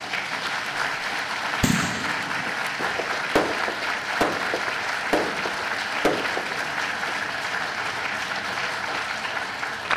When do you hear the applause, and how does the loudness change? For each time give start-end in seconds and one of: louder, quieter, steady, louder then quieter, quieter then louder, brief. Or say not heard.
0.0-9.9 steady.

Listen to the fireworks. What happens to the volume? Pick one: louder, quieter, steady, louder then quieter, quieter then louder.
louder.